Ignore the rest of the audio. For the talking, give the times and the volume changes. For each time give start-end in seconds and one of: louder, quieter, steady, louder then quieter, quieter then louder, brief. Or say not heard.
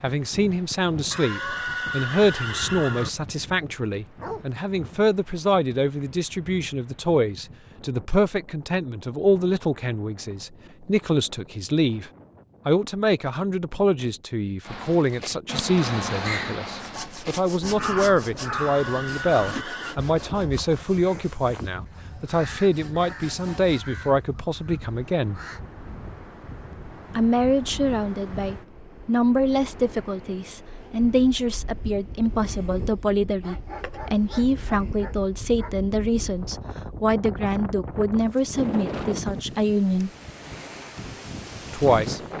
0.0-25.4 steady
27.1-40.1 steady
41.7-42.2 brief.